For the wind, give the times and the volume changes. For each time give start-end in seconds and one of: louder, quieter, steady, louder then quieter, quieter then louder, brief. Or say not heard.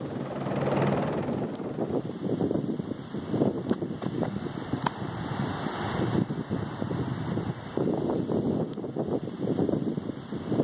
0.0-10.6 steady.